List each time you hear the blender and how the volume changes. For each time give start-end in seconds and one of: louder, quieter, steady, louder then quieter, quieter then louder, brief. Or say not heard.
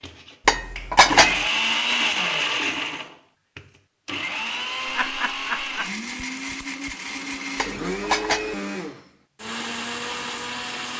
0.0-10.9 quieter.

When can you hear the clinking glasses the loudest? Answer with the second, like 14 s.
1 s.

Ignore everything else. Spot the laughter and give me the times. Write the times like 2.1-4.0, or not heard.
4.8-5.9.